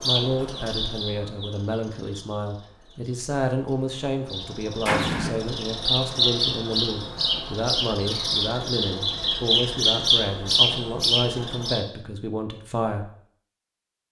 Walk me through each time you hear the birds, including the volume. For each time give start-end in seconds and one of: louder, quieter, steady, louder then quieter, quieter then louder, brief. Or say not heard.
0.0-11.8 quieter then louder.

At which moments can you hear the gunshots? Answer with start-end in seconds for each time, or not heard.
4.8-5.3.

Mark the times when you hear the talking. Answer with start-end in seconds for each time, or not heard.
0.0-13.1.